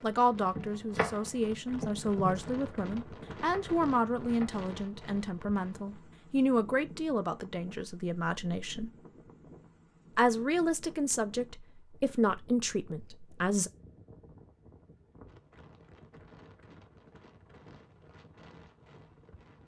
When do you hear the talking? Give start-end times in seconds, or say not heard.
0.0-8.9, 10.2-13.7.